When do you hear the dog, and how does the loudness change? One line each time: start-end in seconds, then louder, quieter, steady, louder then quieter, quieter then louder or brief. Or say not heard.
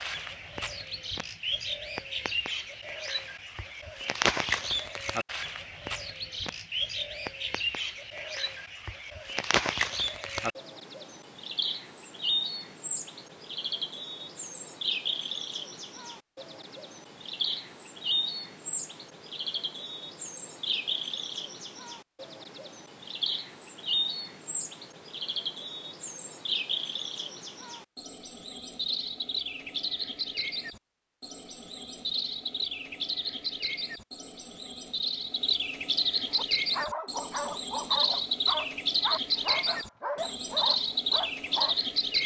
36.3-41.8 steady.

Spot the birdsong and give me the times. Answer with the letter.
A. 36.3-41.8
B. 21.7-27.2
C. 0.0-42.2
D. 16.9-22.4
C.